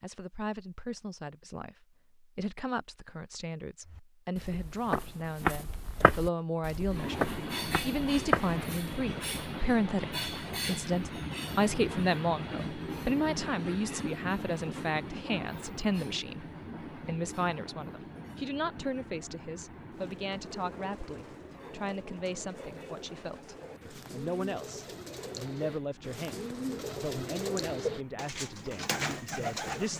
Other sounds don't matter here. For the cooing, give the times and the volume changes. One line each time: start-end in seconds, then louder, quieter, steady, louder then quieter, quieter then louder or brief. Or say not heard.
19.9-29.9 louder.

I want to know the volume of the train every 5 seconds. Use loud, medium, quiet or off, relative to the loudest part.
off, loud, loud, medium, quiet, quiet.